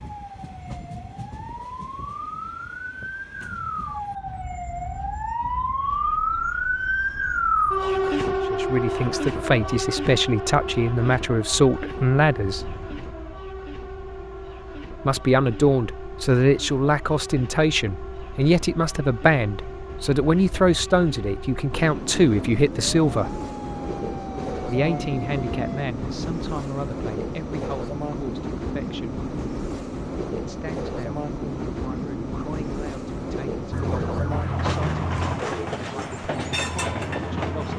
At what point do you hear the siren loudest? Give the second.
8 s.